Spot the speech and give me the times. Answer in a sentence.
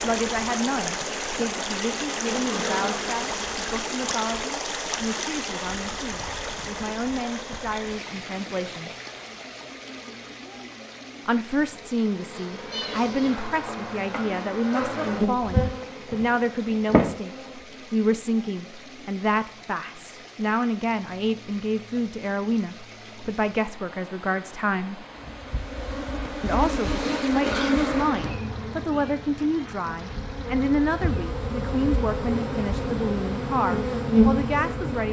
You can hear the speech from 0.0 to 9.0 s, from 11.2 to 25.1 s and from 26.4 to 35.0 s.